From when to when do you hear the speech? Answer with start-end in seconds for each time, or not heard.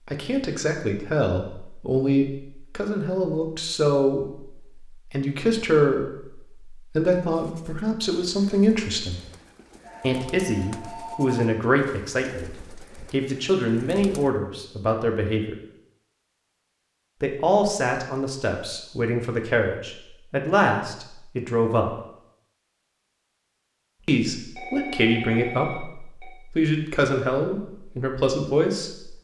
0.1-9.2, 10.0-15.6, 17.2-21.9, 24.1-29.1.